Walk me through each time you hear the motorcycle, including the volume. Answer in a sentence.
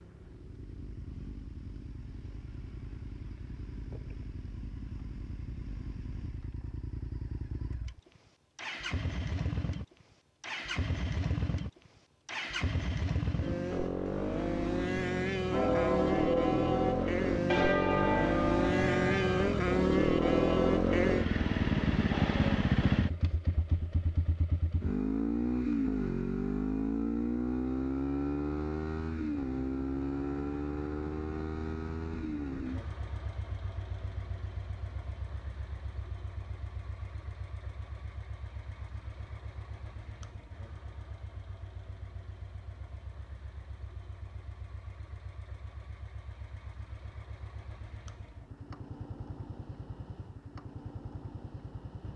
You can hear the motorcycle from 0.0 to 52.1 s, getting louder then quieter.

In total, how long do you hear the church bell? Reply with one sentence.
You can hear the church bell for 5 seconds altogether.